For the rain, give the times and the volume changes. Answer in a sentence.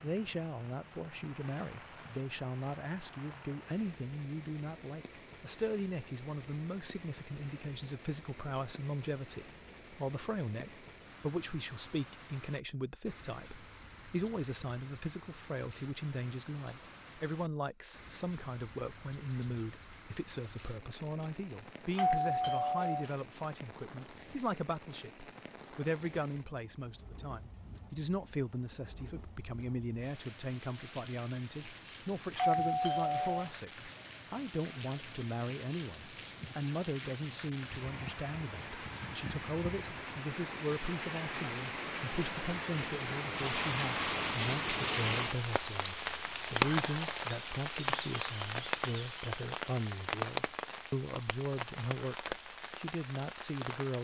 The rain can be heard from 0.0 to 54.0 s, getting louder.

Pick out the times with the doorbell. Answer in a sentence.
The doorbell can be heard from 21.9 to 23.1 s and from 32.4 to 33.5 s.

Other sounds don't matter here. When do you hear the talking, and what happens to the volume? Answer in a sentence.
You can hear the talking from 0.0 to 54.0 s, at a steady volume.